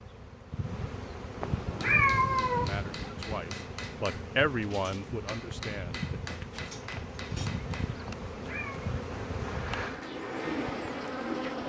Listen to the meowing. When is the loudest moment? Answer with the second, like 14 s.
2 s.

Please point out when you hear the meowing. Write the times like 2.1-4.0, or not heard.
1.4-3.1, 8.1-8.8.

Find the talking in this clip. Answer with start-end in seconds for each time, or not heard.
2.5-6.0.